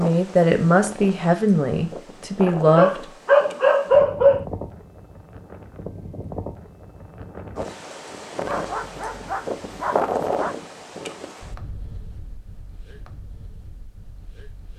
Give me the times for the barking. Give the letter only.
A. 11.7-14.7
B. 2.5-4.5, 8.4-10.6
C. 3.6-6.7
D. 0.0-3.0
B.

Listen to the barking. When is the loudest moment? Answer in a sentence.
The volume of the barking peaks at 4 seconds.